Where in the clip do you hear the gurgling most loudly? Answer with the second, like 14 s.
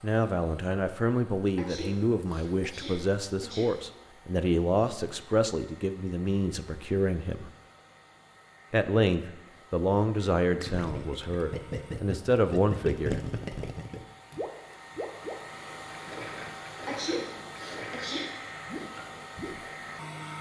13 s.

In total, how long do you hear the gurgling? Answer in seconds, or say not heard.
9 s.